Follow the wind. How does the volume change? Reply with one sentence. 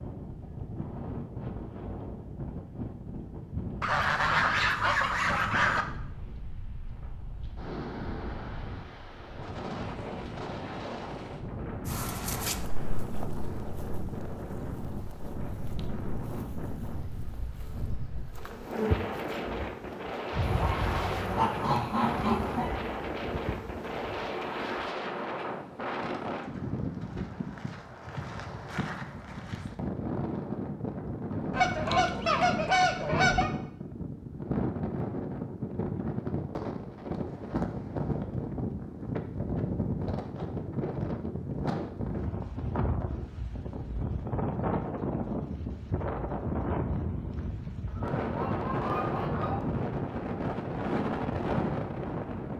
The loudness of the wind goes up.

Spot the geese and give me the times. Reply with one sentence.
You can hear the geese from 3.8 to 5.8 s, from 20.4 to 22.8 s, from 31.5 to 33.5 s and from 47.9 to 49.6 s.